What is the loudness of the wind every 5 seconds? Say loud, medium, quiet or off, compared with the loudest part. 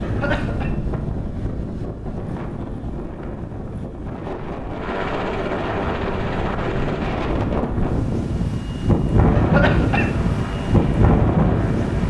medium, loud, loud.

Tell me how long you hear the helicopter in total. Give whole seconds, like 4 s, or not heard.
5 s.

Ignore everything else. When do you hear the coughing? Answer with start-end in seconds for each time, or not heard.
0.0-0.7, 9.3-10.1.